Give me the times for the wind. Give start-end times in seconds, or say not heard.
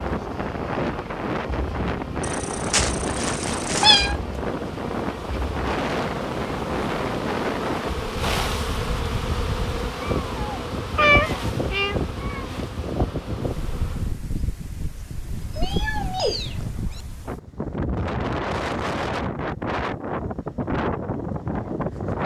0.0-22.2.